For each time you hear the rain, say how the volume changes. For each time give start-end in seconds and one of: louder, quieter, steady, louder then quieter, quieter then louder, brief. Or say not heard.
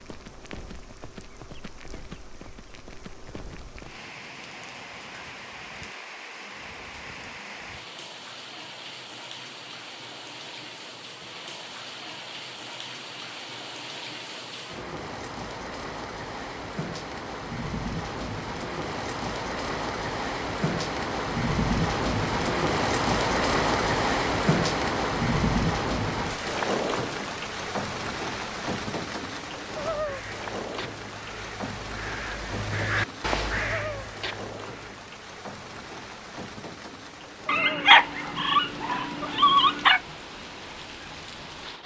0.0-41.8 louder then quieter.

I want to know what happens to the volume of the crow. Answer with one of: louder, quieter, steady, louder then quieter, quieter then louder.
louder then quieter.